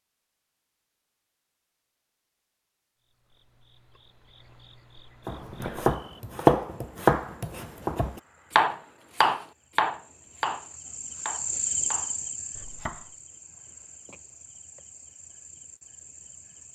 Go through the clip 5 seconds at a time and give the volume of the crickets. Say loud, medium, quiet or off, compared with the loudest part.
quiet, quiet, loud, quiet.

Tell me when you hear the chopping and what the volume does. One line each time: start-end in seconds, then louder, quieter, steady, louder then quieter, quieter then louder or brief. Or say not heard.
5.2-13.1 quieter.